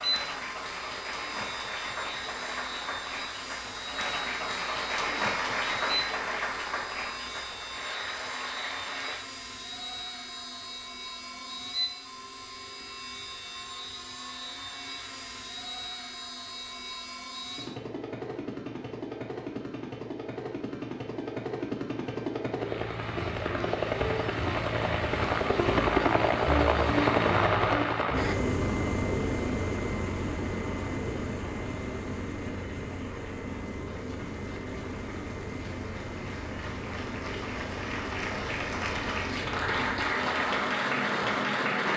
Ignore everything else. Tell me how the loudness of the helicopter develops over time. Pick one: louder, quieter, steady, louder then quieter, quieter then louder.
louder then quieter.